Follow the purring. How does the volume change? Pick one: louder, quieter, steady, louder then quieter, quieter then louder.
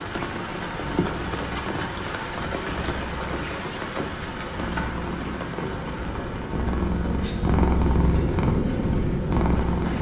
louder.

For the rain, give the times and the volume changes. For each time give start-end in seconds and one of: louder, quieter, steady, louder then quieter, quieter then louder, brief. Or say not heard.
0.0-9.9 quieter.